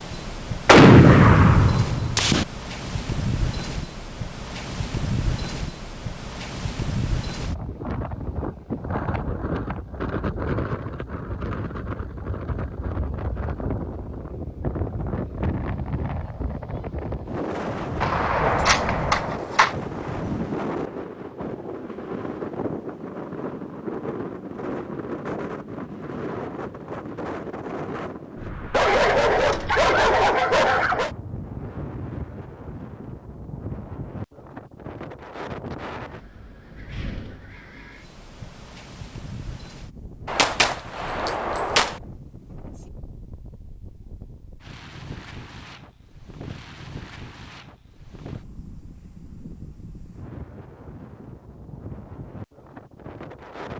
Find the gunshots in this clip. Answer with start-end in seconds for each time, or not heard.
0.7-2.5, 18.0-19.7, 40.2-42.0.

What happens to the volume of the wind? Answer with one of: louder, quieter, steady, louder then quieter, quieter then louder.
quieter.